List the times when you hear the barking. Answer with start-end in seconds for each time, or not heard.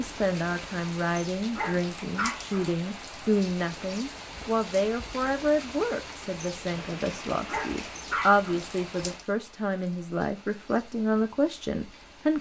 1.5-2.7, 7.5-8.7.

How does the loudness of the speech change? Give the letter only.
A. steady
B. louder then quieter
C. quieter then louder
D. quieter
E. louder
A.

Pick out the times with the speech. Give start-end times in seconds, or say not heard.
0.0-12.3.